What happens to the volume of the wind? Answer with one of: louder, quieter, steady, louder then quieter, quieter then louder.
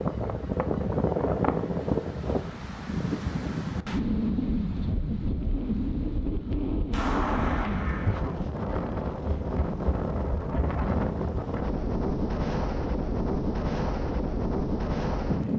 steady.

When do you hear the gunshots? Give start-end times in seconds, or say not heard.
6.9-8.2.